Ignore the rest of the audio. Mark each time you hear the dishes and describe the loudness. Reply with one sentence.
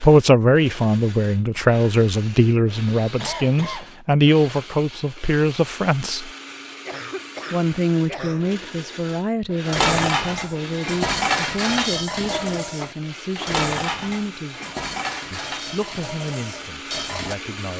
You can hear the dishes from 9.7 to 17.4 s, getting quieter.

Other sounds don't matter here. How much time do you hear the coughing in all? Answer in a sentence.
You can hear the coughing for 4 seconds altogether.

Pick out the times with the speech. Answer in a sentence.
The speech can be heard from 0.0 to 6.3 s, from 7.5 to 14.6 s and from 15.3 to 17.7 s.